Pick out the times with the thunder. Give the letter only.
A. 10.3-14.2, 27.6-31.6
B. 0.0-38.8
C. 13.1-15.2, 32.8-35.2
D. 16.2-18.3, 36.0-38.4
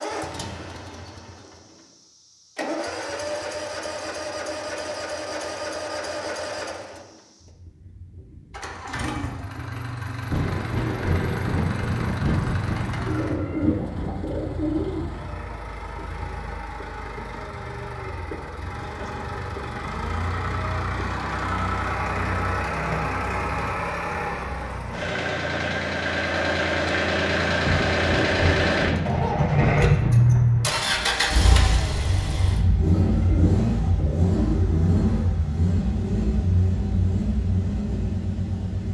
A.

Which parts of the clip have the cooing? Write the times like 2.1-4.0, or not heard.
13.1-15.2, 32.8-35.2.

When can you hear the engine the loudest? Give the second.
30 s.